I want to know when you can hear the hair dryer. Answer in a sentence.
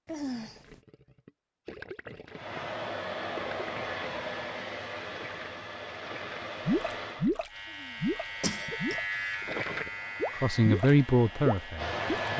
The hair dryer can be heard from 2.3 to 7.3 s and from 9.8 to 12.3 s.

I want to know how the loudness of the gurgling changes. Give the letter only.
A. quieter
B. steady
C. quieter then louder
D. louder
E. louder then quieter
D.